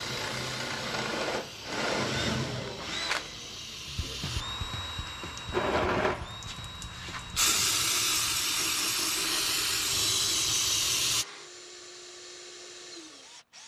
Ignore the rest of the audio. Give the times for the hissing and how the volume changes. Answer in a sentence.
You can hear the hissing from 0.0 to 11.2 s, getting louder.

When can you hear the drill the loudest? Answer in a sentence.
The loudest moment of the drill is at 2 seconds.